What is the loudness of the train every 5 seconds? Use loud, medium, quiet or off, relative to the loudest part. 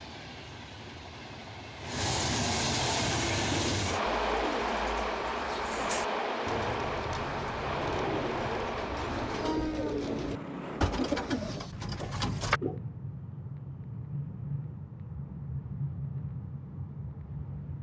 loud, loud, medium, medium.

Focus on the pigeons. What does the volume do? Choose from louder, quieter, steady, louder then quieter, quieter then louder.
louder.